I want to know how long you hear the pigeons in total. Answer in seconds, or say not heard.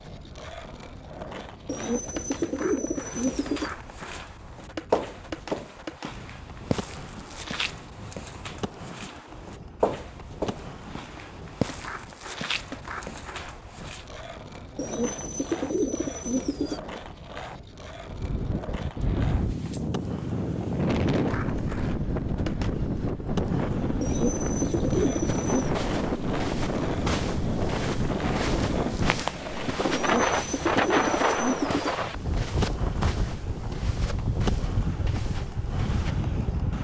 8 s.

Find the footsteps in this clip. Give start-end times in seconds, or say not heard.
3.0-14.1, 25.2-36.3.